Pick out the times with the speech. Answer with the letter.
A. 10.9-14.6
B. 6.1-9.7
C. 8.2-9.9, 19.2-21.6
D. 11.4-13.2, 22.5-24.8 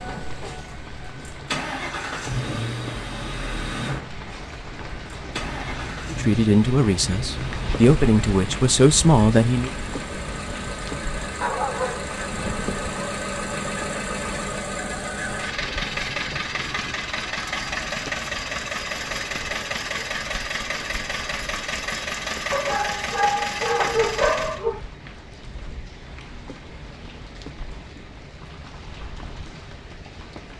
B.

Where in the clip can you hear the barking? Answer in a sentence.
The barking can be heard from 11.4 to 13.2 s and from 22.5 to 24.8 s.